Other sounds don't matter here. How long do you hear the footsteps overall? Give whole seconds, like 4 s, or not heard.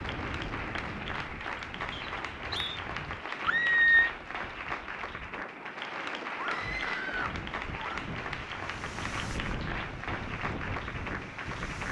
not heard.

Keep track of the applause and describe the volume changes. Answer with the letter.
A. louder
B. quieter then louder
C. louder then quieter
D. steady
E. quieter
D.